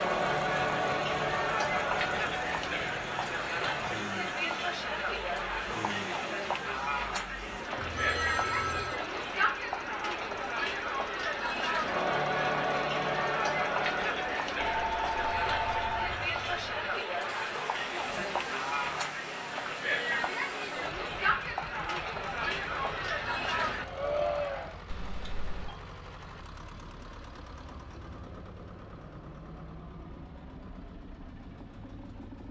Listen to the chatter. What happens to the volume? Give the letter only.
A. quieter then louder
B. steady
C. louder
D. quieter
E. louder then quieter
B.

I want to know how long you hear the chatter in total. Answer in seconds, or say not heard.
25 s.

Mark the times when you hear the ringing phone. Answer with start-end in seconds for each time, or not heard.
7.8-8.9, 14.6-16.2, 24.9-25.8.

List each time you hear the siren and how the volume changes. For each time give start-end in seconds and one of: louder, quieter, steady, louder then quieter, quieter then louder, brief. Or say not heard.
not heard.